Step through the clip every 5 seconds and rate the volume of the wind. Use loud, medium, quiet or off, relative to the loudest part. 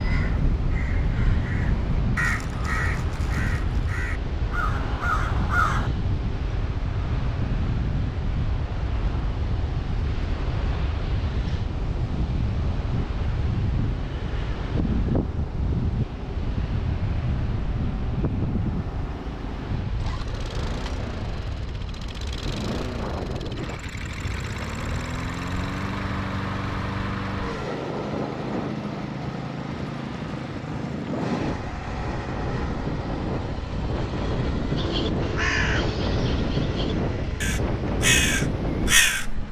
loud, loud, loud, loud, medium, medium, loud, loud.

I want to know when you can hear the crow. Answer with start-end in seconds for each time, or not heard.
0.0-5.9, 34.8-39.2.